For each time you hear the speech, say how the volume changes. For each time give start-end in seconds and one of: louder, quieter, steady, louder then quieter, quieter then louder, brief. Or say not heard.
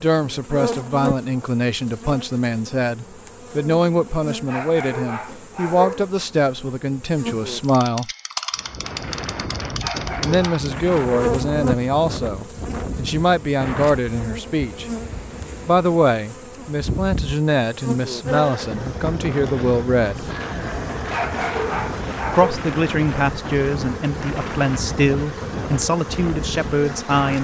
0.0-8.1 steady
10.2-14.8 quieter then louder
15.7-20.2 steady
22.3-27.3 steady.